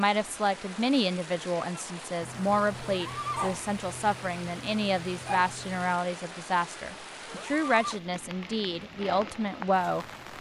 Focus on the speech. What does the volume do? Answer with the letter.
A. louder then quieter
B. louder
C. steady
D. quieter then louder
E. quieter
C.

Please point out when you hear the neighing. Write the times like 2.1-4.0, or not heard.
2.8-3.5, 7.2-8.1.